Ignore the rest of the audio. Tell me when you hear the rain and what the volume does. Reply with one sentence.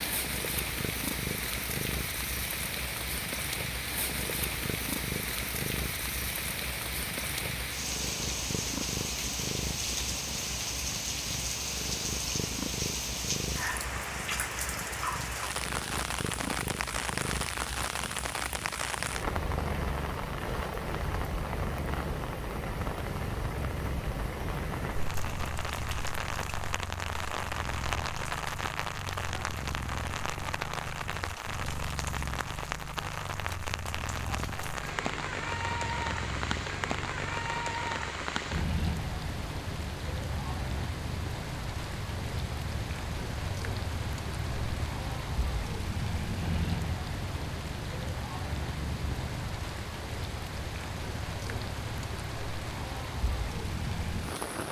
The rain can be heard from 0.0 to 54.6 s, at a steady volume.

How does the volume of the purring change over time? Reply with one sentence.
The volume of the purring stays about the same.